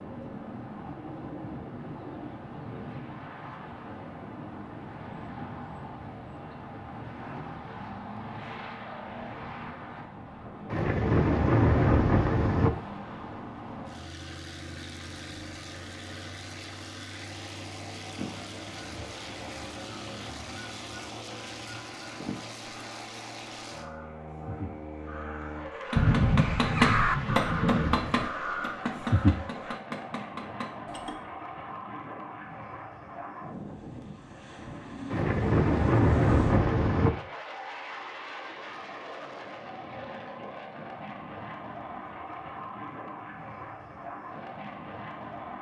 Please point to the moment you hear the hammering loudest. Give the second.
27 s.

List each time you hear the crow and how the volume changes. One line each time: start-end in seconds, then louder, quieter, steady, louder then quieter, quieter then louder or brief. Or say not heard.
18.1-29.8 louder.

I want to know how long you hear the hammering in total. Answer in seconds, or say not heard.
5 s.